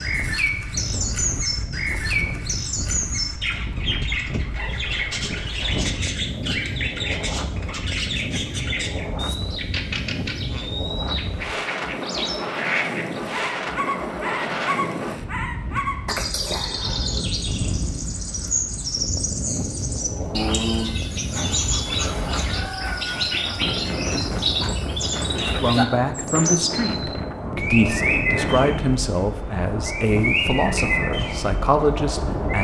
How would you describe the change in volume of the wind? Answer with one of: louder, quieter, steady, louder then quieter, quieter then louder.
steady.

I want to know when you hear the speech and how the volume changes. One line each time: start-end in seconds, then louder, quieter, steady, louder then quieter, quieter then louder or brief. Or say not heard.
25.3-32.5 steady.